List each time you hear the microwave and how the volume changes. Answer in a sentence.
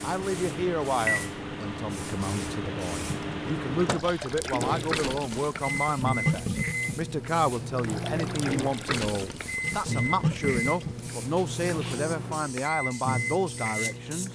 You can hear the microwave from 0.0 to 14.3 s, at a steady volume.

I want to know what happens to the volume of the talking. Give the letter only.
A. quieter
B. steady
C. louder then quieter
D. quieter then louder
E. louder
B.